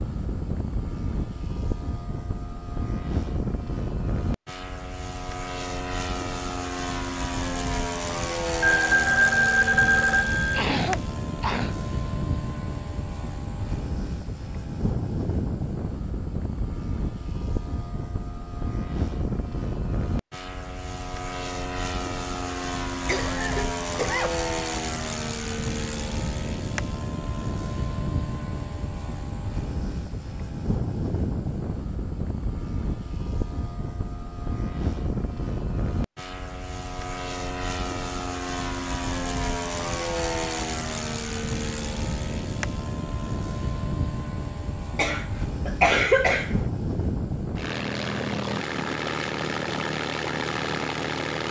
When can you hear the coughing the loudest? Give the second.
46 s.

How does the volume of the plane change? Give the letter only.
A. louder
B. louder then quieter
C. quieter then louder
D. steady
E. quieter
D.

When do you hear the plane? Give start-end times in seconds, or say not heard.
0.0-51.4.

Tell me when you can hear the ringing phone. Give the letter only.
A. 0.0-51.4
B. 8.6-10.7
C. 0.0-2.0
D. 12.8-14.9
B.